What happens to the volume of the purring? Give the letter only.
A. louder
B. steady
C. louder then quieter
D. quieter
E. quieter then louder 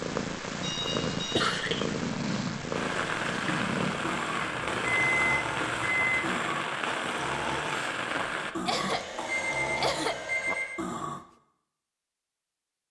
D.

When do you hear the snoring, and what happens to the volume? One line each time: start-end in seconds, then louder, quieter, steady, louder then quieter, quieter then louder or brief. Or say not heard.
0.9-11.2 steady.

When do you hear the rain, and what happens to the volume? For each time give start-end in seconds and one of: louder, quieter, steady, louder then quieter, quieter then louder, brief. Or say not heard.
0.1-8.6 louder.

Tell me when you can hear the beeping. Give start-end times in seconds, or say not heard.
0.6-1.4, 4.4-6.2, 8.8-10.8.